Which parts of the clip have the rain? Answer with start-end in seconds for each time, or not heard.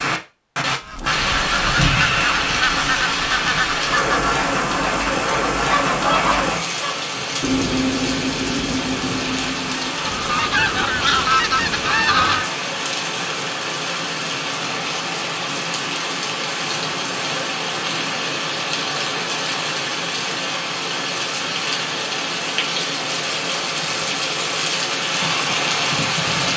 0.0-26.5.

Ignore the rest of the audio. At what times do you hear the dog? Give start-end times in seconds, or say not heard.
not heard.